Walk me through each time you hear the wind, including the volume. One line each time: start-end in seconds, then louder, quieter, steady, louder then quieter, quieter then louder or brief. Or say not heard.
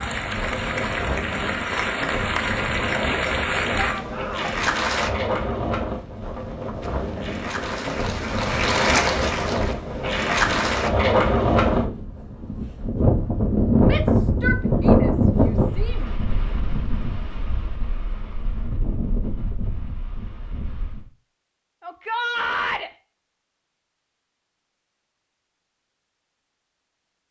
0.0-21.1 louder then quieter.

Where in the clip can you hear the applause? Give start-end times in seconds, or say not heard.
0.0-5.1, 6.8-10.9.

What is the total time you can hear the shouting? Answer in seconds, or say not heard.
4 s.